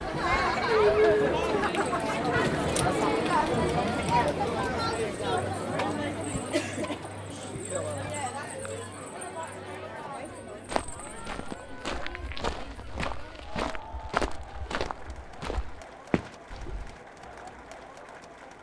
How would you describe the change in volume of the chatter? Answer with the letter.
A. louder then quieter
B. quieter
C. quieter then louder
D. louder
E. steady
B.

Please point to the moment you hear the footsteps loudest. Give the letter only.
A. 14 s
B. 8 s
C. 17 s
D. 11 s
A.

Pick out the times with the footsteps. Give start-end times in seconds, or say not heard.
10.7-17.0.